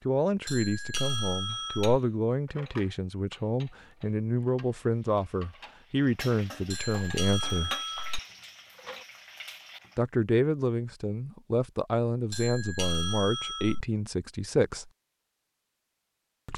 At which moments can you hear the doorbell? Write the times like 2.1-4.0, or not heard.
0.5-2.0, 6.7-8.2, 12.3-13.8.